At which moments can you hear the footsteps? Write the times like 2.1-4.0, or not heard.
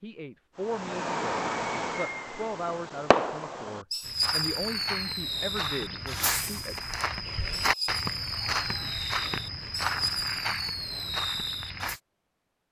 4.0-12.0.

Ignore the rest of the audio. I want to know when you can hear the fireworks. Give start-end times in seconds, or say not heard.
0.6-12.0.